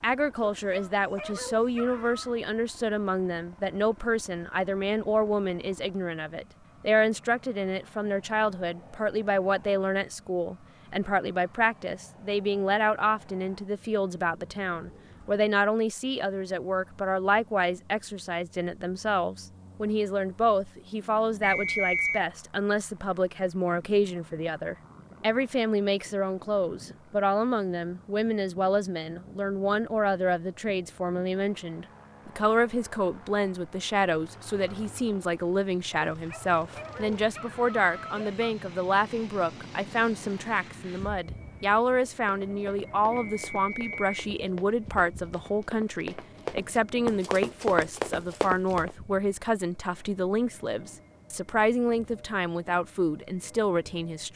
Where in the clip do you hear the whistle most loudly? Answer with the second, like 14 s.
22 s.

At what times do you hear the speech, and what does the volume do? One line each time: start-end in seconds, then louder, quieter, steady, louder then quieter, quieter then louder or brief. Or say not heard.
0.0-54.3 steady.